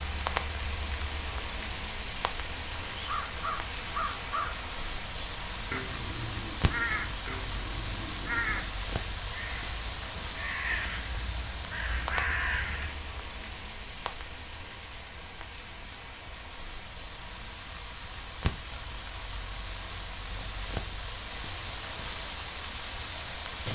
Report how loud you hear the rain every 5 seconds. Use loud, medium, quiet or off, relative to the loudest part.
loud, loud, loud, medium, loud.